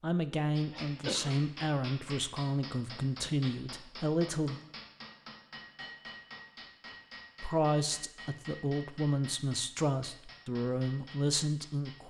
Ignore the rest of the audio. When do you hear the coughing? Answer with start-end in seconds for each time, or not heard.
0.7-1.3.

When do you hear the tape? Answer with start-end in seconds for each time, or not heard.
not heard.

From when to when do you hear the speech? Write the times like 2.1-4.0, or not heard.
0.0-4.6, 7.4-12.0.